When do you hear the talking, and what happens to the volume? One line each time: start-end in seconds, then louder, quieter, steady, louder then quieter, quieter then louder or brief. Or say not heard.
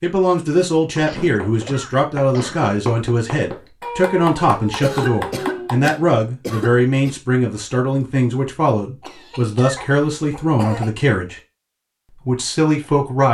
0.0-11.4 steady
12.1-13.2 brief.